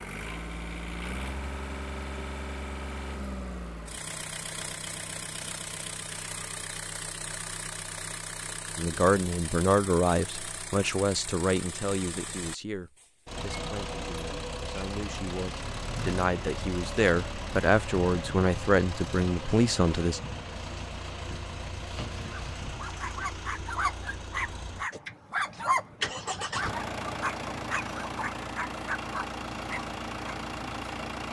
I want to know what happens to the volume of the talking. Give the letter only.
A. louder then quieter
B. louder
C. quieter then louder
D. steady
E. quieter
C.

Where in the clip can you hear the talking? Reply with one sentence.
You can hear the talking from 8.8 to 20.2 s.